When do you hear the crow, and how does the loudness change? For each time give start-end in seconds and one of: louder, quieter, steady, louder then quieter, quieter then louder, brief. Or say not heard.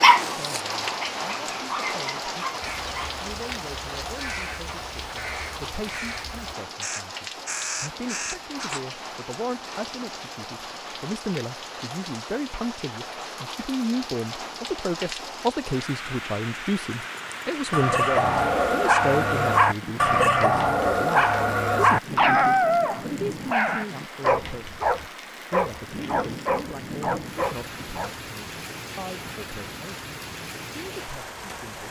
2.6-8.8 louder.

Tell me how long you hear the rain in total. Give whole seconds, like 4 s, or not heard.
32 s.